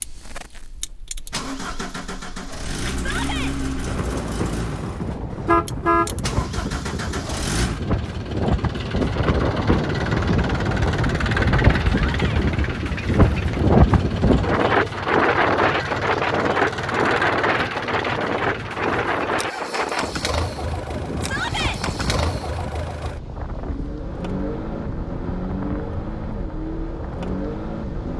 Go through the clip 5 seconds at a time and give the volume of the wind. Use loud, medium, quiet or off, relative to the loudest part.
quiet, medium, loud, loud, quiet, quiet.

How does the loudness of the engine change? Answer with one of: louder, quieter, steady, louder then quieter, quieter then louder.
steady.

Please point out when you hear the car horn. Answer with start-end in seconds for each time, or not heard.
5.3-6.1.